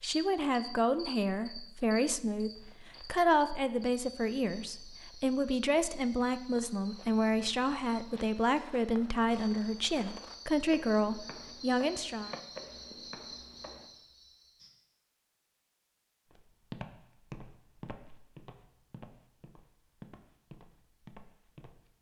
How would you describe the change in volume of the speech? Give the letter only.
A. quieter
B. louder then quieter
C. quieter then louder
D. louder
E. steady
E.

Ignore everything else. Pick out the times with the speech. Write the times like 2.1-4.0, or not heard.
0.0-12.3.